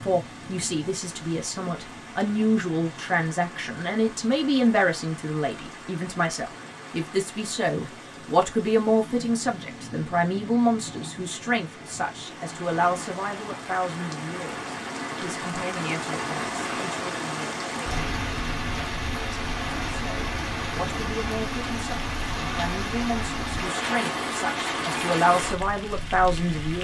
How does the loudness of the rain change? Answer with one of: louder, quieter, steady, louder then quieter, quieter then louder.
louder.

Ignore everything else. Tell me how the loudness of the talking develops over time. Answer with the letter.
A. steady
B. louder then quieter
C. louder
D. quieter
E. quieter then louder
E.